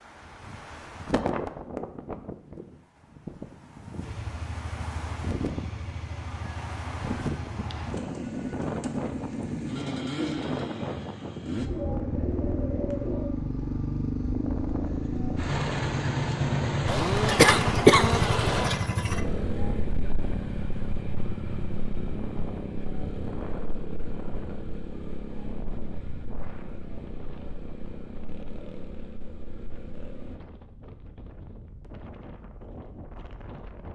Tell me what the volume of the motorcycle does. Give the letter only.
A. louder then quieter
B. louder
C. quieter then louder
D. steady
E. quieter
A.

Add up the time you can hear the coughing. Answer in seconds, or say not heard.
2 s.